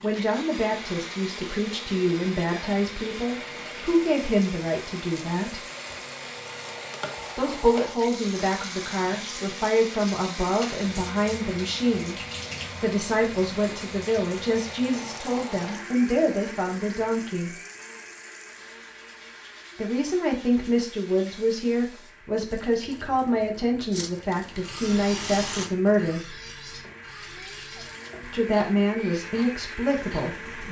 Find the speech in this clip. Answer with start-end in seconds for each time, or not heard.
0.0-5.7, 7.3-12.2, 12.8-17.6, 19.8-26.4, 28.2-30.6.